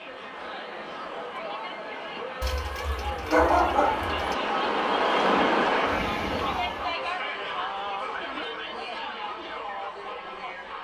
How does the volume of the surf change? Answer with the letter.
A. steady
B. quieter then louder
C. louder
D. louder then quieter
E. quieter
C.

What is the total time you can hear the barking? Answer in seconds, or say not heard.
2 s.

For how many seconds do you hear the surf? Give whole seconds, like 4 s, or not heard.
7 s.